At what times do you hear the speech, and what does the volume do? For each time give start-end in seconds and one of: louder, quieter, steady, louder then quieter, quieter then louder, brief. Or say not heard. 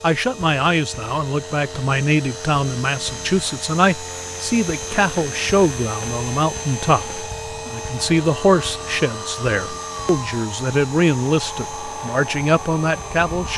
0.0-13.5 steady.